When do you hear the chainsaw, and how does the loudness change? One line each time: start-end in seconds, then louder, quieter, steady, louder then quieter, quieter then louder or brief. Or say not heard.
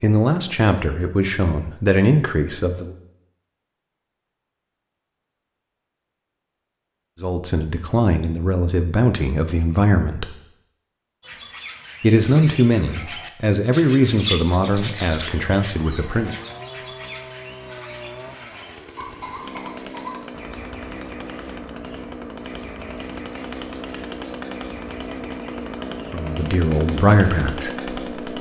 14.8-28.3 louder.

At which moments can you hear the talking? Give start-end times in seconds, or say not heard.
0.0-3.0, 7.2-10.3, 12.0-16.4, 26.1-27.7.